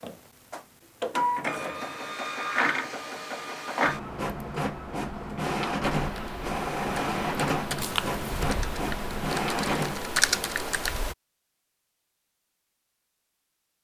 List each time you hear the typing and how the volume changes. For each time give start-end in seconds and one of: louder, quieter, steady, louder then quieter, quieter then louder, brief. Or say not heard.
5.8-11.2 louder.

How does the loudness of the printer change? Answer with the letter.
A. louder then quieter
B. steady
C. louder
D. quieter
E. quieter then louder
B.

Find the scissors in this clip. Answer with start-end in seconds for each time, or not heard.
7.8-8.5.